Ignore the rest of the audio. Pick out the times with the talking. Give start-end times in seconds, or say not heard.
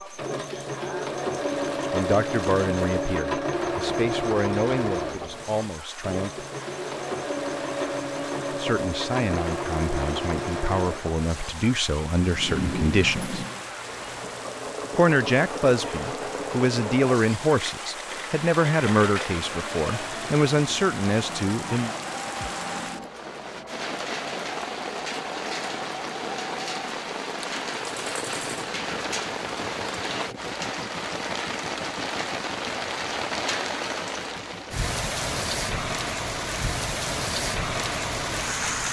1.8-6.5, 8.5-13.3, 14.9-21.9.